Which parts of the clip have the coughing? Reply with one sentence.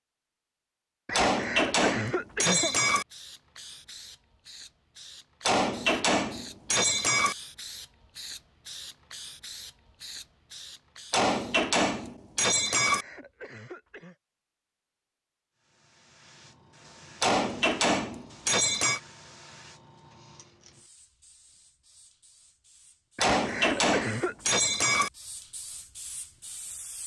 The coughing can be heard from 1.1 to 2.8 s, from 12.8 to 14.2 s and from 23.1 to 24.4 s.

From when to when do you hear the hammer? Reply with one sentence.
You can hear the hammer from 1.1 to 3.0 s, from 5.5 to 7.3 s, from 11.1 to 13.1 s, from 17.2 to 19.0 s and from 23.2 to 25.1 s.